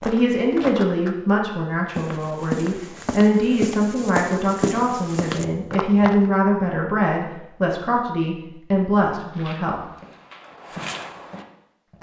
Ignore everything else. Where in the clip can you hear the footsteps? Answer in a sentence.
The footsteps can be heard from 0.0 to 6.3 s and from 9.3 to 11.9 s.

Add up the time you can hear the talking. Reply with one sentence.
The talking can be heard for 10 seconds in total.